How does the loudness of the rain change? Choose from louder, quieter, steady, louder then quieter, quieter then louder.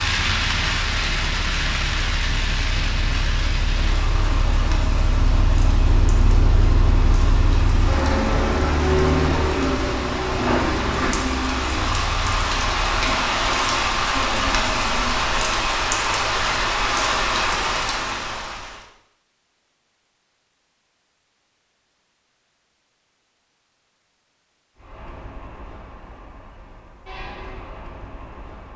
quieter then louder.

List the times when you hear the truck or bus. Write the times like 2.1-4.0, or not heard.
0.0-13.1, 24.8-28.7.